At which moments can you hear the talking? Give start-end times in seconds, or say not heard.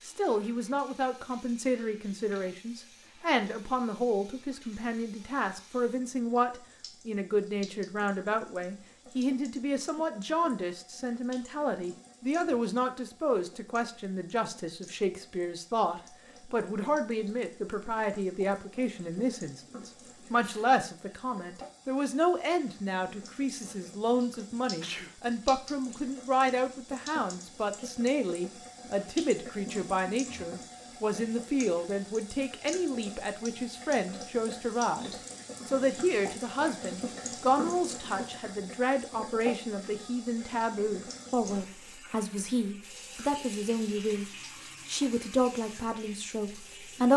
0.0-47.1.